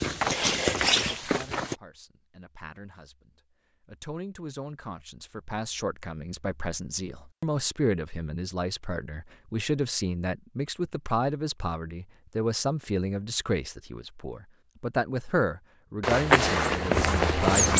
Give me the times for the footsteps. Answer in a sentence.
The footsteps can be heard from 0.0 to 1.8 s and from 16.0 to 17.7 s.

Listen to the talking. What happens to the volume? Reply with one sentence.
The volume of the talking goes up.